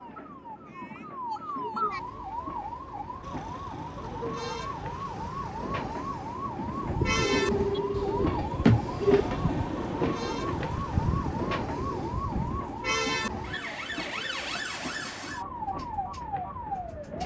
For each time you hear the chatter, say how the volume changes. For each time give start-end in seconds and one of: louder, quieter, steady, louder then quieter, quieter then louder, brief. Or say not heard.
not heard.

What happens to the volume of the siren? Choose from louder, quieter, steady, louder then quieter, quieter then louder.
steady.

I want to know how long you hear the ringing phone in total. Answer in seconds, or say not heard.
2 s.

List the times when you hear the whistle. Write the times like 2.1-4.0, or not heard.
not heard.